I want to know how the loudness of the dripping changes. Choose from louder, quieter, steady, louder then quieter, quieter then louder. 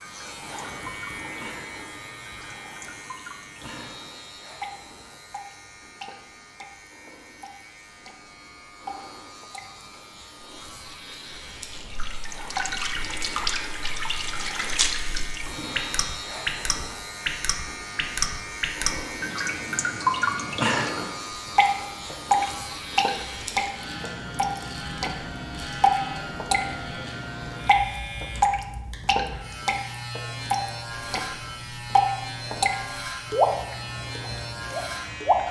louder.